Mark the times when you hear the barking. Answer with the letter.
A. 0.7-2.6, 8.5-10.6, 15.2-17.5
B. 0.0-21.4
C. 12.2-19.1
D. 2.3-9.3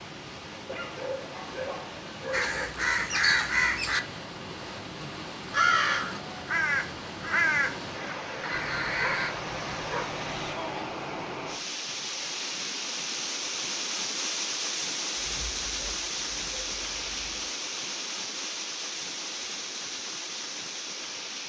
A.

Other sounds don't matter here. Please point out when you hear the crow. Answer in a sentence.
You can hear the crow from 2.3 to 9.3 s.